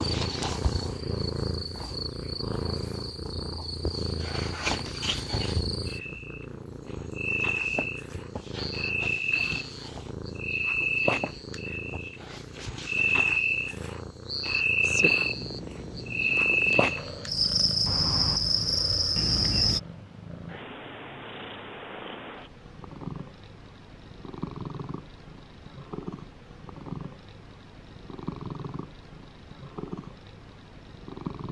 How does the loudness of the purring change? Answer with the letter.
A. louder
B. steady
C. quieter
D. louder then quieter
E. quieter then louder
C.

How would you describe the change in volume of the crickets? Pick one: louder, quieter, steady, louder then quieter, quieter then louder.
louder.